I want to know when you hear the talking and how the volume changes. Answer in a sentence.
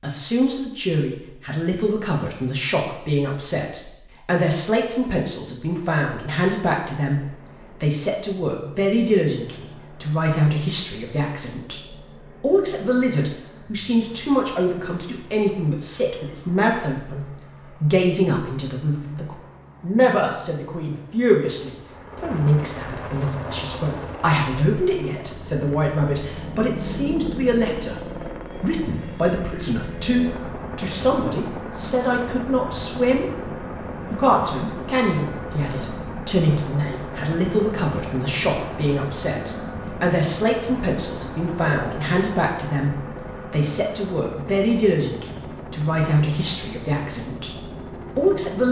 You can hear the talking from 0.0 to 33.3 s, at a steady volume; and from 34.1 to 48.6 s, at a steady volume.